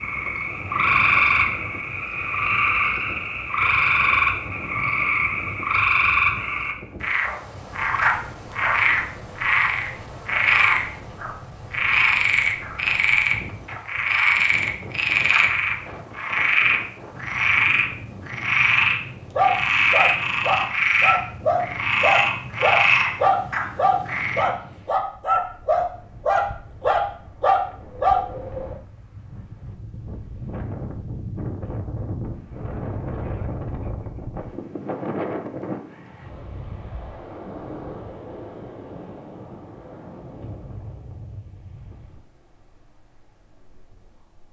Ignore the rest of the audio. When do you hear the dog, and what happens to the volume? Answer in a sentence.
You can hear the dog from 19.4 to 28.2 s, at a steady volume.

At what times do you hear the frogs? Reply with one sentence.
You can hear the frogs from 0.0 to 24.4 s.